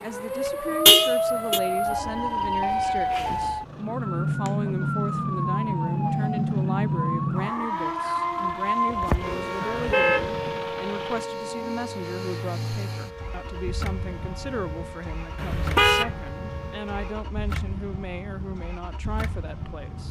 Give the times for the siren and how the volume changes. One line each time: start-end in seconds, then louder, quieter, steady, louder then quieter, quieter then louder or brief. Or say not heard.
0.0-17.4 quieter.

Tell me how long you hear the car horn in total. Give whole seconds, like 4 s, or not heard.
3 s.